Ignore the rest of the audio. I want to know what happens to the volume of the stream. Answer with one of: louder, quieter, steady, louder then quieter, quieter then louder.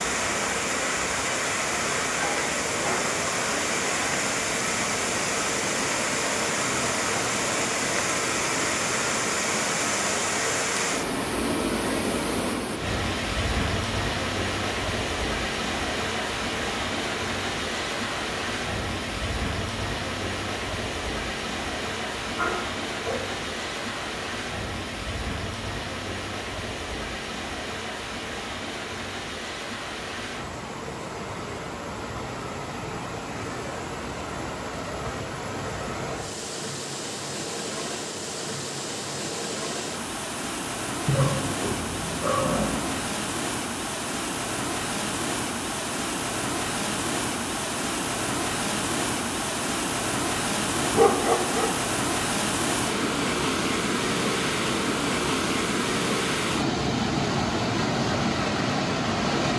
quieter then louder.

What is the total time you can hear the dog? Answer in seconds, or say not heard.
5 s.